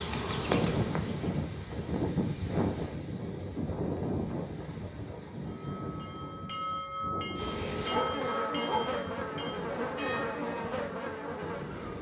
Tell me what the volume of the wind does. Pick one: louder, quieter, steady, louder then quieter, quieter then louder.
quieter.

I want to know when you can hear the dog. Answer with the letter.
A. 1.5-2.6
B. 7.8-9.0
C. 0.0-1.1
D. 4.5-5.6
B.